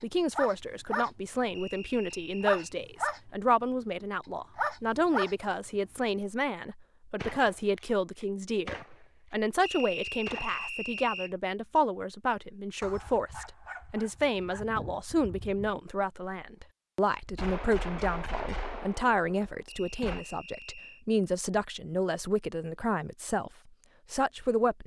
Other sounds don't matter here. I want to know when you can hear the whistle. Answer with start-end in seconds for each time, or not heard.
1.5-2.6, 9.6-11.3, 19.6-21.1.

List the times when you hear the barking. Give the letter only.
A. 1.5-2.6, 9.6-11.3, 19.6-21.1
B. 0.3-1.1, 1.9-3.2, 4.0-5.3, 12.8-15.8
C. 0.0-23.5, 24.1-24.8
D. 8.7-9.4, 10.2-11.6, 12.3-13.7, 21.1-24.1
B.